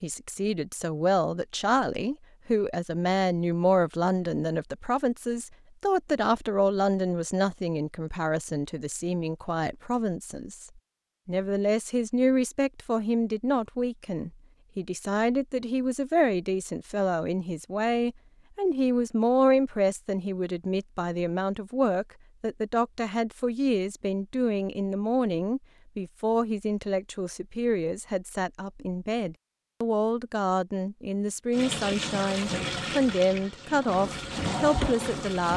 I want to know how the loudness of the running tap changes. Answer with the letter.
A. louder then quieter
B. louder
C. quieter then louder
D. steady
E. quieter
C.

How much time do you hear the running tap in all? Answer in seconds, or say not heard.
4 s.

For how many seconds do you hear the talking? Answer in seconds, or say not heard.
35 s.